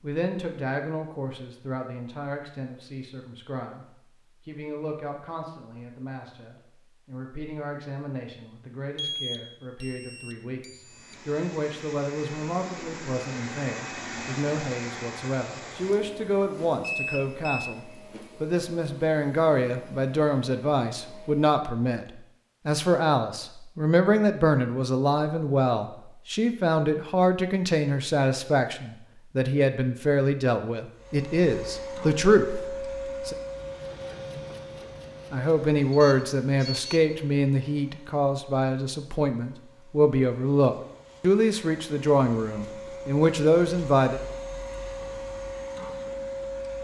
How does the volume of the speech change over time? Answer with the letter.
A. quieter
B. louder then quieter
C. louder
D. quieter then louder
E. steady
C.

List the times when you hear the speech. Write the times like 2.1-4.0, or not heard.
0.0-3.9, 4.5-22.1, 22.6-33.4, 35.3-44.2.